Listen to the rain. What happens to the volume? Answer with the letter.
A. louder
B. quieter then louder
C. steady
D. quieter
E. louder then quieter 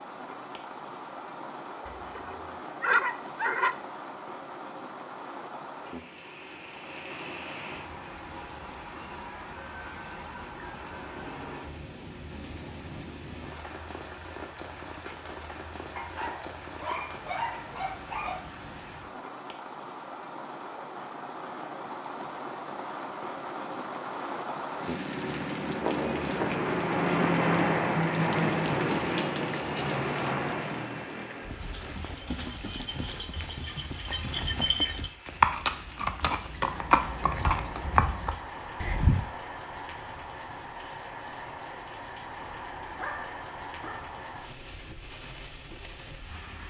E.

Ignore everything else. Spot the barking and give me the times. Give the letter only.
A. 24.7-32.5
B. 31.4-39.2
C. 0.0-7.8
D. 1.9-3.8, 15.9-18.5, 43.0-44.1
D.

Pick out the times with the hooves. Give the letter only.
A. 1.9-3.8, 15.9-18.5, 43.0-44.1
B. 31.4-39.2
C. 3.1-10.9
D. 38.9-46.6
B.